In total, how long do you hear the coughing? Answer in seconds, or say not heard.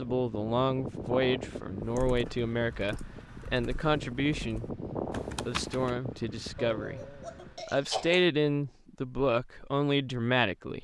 2 s.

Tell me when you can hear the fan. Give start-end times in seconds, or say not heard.
0.0-7.7.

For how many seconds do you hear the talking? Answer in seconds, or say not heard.
10 s.